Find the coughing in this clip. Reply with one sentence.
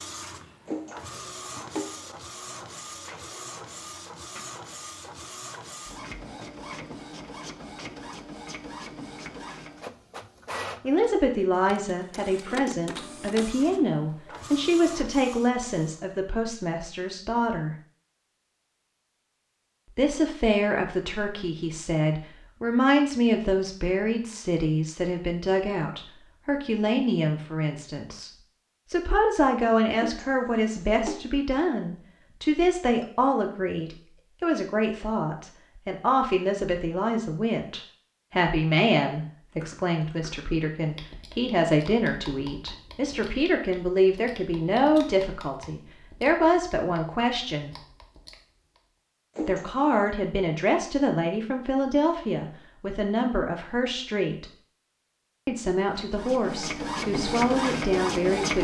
The coughing can be heard from 0.7 to 2.1 s, from 29.9 to 31.2 s and from 49.4 to 50.1 s.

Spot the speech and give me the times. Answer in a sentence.
You can hear the speech from 10.8 to 17.8 s, from 19.9 to 28.3 s, from 28.9 to 47.8 s, from 49.5 to 54.5 s and from 55.5 to 58.5 s.